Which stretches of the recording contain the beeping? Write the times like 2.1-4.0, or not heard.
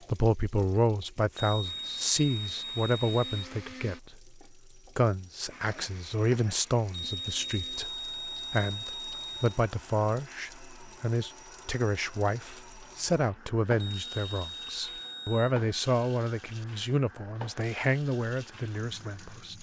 1.4-3.5, 6.9-9.6, 13.8-15.6.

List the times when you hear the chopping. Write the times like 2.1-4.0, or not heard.
not heard.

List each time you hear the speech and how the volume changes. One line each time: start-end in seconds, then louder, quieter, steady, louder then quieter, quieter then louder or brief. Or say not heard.
0.1-19.5 steady.